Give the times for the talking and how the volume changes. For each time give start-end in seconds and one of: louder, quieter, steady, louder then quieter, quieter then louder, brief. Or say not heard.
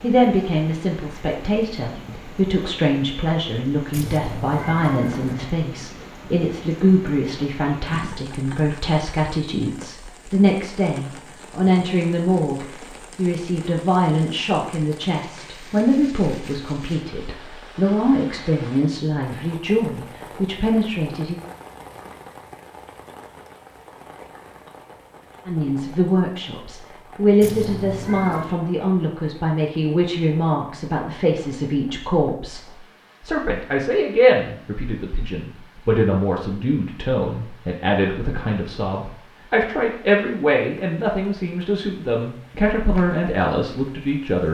0.0-21.4 steady
25.4-44.5 steady.